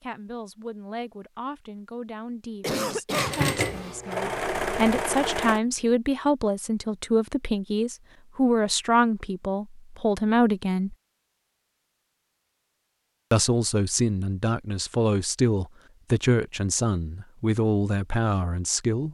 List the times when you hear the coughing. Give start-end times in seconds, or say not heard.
2.6-3.4.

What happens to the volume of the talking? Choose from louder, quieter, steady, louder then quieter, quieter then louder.
louder.